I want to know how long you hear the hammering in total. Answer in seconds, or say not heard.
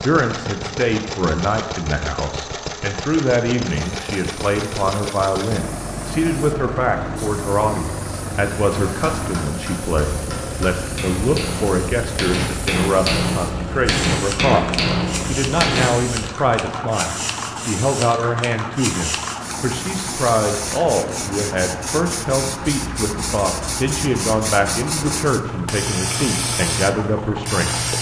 7 s.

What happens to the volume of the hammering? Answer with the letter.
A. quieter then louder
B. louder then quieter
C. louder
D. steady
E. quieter
C.